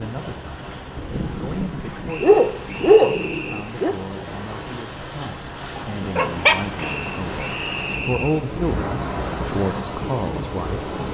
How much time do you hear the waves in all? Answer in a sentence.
The waves can be heard for 11 seconds in total.